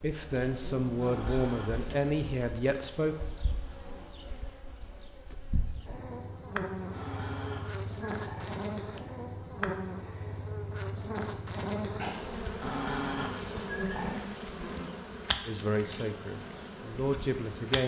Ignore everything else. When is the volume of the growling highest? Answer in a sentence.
The loudest moment of the growling is at 13 seconds.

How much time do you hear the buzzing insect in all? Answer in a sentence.
The buzzing insect can be heard for 18 seconds in total.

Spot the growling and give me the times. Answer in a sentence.
The growling can be heard from 1.0 to 1.9 s, from 6.9 to 8.6 s and from 12.6 to 14.2 s.